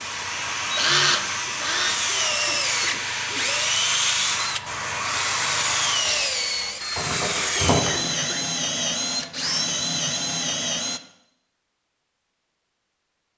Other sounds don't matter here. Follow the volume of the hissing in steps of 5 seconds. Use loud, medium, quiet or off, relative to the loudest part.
loud, loud, off.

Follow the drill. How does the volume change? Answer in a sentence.
The volume of the drill stays about the same.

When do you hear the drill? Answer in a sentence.
The drill can be heard from 0.0 to 11.0 s.